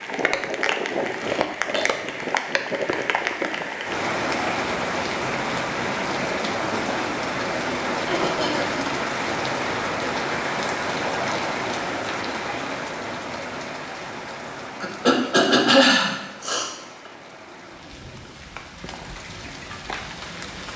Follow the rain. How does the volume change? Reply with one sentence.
The loudness of the rain goes down.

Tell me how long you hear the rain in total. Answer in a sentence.
You can hear the rain for 21 seconds altogether.